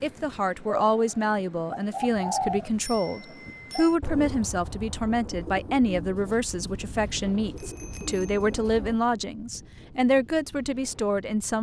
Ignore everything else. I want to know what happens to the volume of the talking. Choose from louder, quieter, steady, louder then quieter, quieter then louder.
steady.